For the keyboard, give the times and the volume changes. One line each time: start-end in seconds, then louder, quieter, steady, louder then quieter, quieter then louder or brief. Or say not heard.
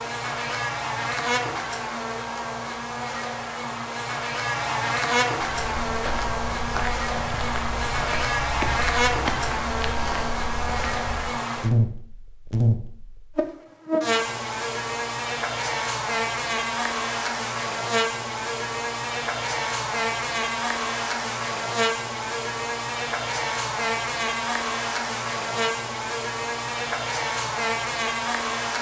not heard.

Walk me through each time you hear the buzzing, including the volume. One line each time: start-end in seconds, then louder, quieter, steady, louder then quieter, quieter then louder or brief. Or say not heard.
0.0-28.7 steady.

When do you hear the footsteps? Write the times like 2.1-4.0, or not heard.
5.7-11.4.